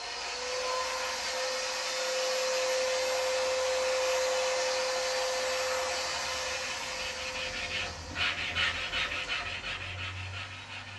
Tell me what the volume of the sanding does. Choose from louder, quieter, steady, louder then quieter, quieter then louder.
louder.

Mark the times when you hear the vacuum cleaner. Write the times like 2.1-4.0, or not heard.
0.0-10.9.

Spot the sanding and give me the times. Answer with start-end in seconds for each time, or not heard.
0.0-10.9.